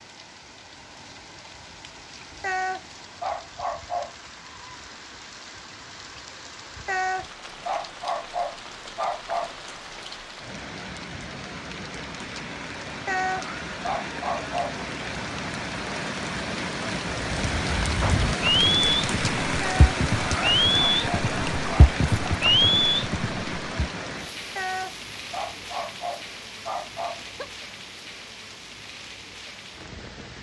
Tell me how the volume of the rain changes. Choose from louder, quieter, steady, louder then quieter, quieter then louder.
louder then quieter.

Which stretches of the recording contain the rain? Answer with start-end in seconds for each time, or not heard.
0.0-30.3.